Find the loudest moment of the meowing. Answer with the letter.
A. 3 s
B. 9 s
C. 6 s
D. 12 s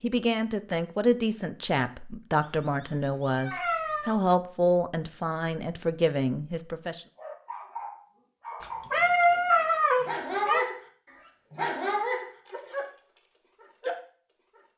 B.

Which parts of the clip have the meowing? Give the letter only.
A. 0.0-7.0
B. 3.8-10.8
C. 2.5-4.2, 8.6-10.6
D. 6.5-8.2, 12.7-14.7
C.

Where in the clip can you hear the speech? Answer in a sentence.
The speech can be heard from 0.0 to 7.0 s.